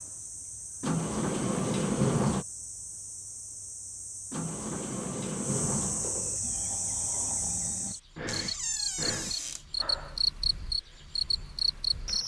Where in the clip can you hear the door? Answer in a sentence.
The door can be heard from 0.8 to 2.5 s, from 4.3 to 6.4 s and from 8.2 to 9.7 s.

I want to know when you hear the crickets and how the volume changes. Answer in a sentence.
The crickets can be heard from 0.0 to 12.2 s, getting louder.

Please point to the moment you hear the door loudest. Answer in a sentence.
The loudest moment of the door is at 2 seconds.